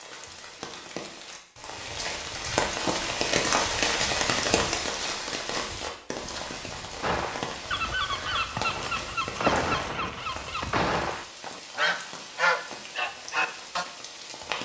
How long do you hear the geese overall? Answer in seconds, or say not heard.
7 s.